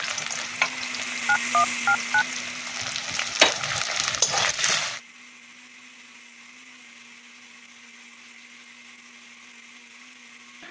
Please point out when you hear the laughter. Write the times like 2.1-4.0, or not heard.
not heard.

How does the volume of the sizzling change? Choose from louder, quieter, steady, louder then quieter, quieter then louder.
quieter then louder.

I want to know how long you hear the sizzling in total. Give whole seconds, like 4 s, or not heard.
5 s.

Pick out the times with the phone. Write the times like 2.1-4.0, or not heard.
1.2-2.2.